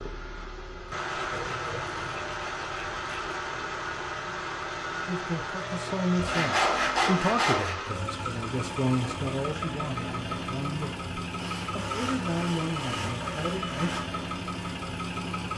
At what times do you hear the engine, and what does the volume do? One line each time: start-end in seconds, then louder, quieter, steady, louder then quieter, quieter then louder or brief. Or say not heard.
0.0-15.5 steady.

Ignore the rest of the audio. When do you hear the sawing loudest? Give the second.
7 s.